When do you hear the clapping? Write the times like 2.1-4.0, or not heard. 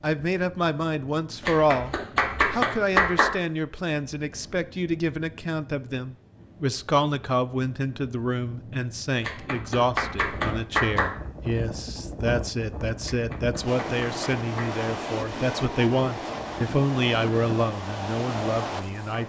1.4-3.4, 9.2-11.1, 13.0-14.8.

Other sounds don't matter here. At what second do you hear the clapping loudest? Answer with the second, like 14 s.
3 s.